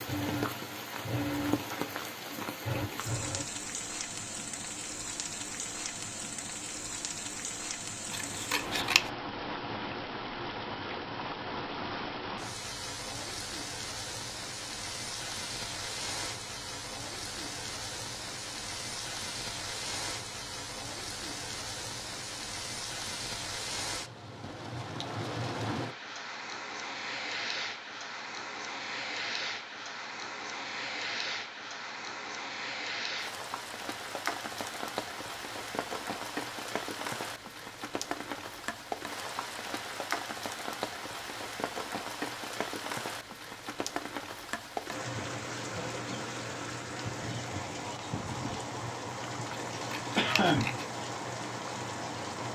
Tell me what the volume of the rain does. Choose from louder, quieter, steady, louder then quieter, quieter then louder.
steady.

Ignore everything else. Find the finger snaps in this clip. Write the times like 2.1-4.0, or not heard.
not heard.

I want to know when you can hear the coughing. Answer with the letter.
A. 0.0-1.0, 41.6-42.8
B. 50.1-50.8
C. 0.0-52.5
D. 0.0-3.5
B.